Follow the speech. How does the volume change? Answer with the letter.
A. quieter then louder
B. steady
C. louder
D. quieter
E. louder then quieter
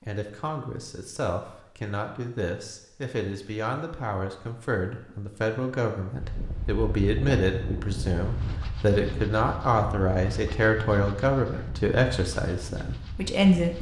C.